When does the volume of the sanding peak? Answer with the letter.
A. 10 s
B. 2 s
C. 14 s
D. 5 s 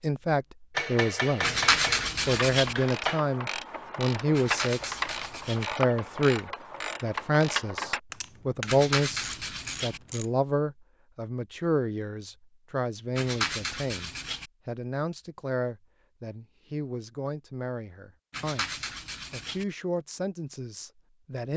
B.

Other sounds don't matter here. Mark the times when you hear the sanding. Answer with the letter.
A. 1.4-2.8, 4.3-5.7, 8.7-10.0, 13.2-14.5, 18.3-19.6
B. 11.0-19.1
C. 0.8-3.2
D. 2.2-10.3
A.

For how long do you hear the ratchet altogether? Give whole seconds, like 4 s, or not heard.
8 s.